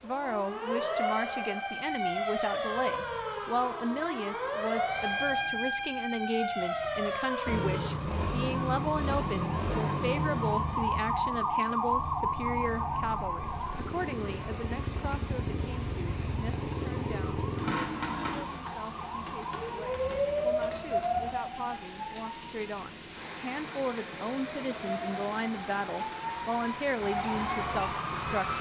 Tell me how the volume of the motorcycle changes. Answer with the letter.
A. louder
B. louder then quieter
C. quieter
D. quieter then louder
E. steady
D.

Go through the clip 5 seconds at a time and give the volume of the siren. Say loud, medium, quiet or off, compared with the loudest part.
loud, loud, loud, medium, loud, loud.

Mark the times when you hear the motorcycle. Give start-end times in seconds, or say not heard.
7.5-18.4.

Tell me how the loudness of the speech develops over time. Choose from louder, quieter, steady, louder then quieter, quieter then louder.
quieter then louder.